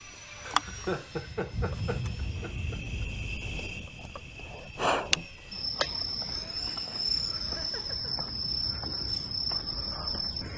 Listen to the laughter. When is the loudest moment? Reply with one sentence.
The loudest moment of the laughter is at 1 second.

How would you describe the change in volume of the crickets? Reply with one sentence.
The volume of the crickets goes down, then up.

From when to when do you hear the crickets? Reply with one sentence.
You can hear the crickets from 0.0 to 10.5 s.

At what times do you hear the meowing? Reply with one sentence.
You can hear the meowing from 2.2 to 3.8 s.